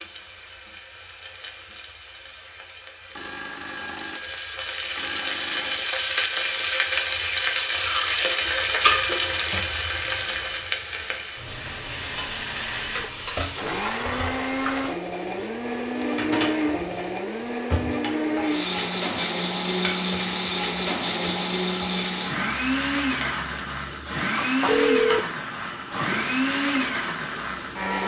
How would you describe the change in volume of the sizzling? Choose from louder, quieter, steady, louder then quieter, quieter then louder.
louder then quieter.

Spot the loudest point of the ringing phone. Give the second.
25 s.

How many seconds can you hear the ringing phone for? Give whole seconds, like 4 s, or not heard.
3 s.